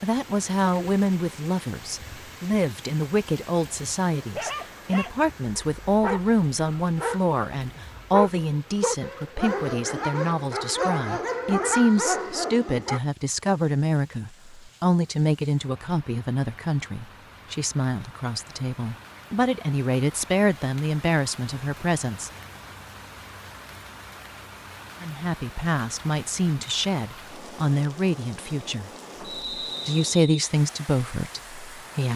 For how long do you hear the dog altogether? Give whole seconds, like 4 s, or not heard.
9 s.